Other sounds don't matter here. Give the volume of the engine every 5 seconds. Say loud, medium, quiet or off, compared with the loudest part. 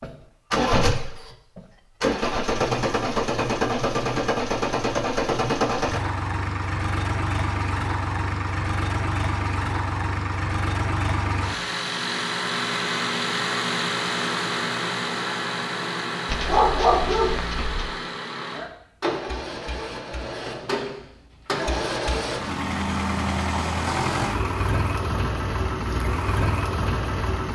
loud, loud, loud, medium, loud, loud.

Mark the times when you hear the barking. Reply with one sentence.
The barking can be heard from 16.2 to 17.9 s.